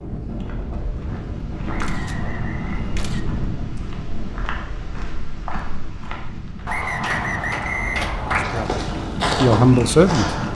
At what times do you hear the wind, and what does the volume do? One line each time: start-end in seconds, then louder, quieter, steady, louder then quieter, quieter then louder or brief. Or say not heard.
0.0-10.5 quieter then louder.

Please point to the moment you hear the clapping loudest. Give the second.
8 s.